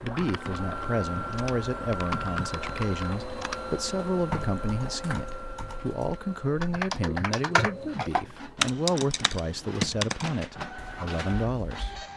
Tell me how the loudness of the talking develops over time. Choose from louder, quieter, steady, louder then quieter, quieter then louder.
steady.